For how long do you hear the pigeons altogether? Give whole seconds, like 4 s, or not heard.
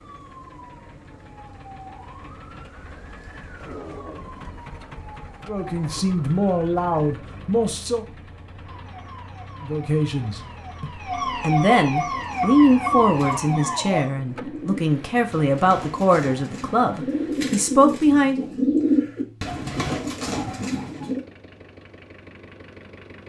9 s.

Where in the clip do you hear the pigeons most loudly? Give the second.
19 s.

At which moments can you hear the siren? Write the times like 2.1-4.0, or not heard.
0.0-7.2, 8.7-14.1.